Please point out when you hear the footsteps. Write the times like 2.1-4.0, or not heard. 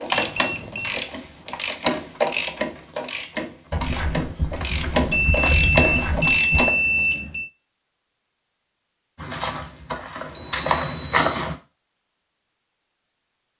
3.7-6.7, 9.2-11.6.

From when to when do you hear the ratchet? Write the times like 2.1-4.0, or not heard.
0.0-7.2.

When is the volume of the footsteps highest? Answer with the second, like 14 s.
11 s.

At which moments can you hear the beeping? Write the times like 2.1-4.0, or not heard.
0.1-1.1, 5.1-7.5, 10.3-11.3.